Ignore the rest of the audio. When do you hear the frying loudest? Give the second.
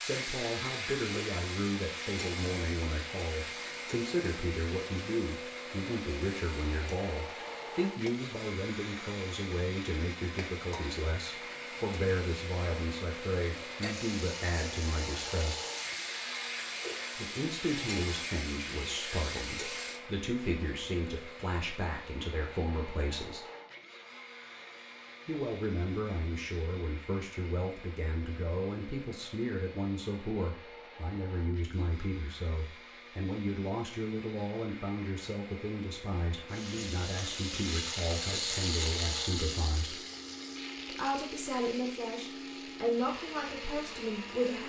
39 s.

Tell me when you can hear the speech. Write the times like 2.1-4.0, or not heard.
0.0-15.7, 17.1-23.4, 25.2-40.0, 40.9-44.6.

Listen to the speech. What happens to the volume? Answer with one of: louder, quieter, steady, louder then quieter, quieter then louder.
steady.